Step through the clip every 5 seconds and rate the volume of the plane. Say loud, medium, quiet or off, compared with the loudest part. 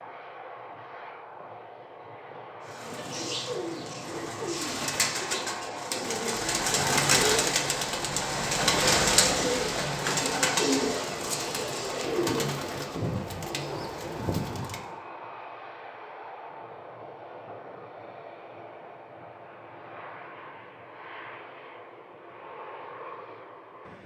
medium, loud, loud, medium, medium.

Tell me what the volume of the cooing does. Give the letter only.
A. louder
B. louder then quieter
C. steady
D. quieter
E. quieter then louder
B.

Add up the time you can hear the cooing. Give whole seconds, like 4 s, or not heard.
12 s.